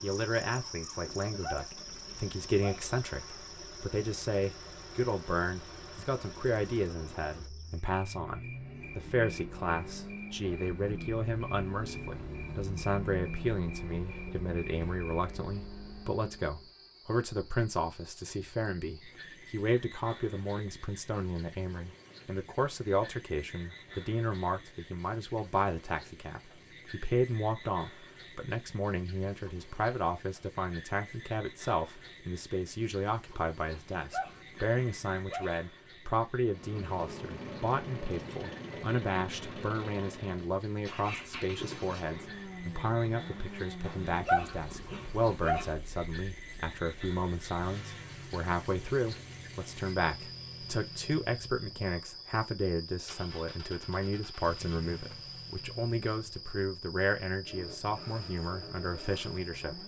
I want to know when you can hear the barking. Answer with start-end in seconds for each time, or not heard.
1.2-2.9, 33.7-35.5, 43.9-45.7.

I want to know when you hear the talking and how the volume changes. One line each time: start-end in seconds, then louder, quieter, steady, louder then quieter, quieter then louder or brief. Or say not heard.
0.0-59.8 steady.